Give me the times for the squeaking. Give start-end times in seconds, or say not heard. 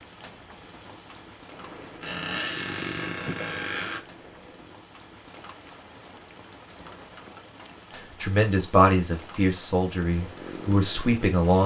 2.0-4.0.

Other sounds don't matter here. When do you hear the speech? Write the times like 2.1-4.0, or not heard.
8.2-11.6.